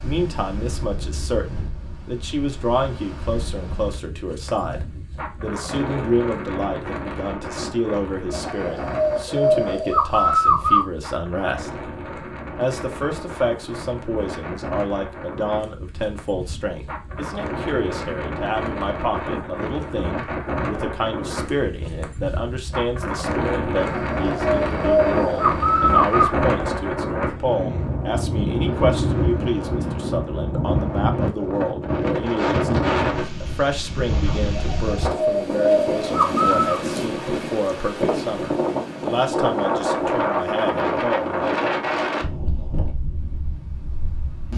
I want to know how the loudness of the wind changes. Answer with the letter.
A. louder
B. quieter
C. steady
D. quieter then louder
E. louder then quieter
A.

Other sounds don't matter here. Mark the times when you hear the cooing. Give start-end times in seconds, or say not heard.
8.3-10.8, 23.8-26.3, 34.5-36.8.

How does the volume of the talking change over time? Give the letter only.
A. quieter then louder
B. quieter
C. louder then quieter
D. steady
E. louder
D.